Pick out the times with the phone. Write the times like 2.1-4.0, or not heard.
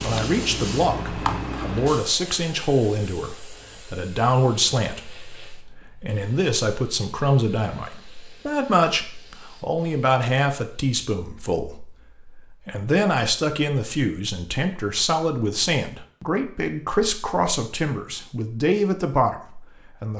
not heard.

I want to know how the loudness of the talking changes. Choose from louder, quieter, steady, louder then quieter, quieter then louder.
steady.